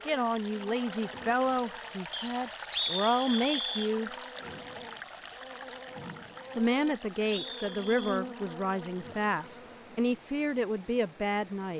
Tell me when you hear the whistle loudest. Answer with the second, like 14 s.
3 s.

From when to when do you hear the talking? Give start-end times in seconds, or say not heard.
0.0-4.1, 6.5-11.7.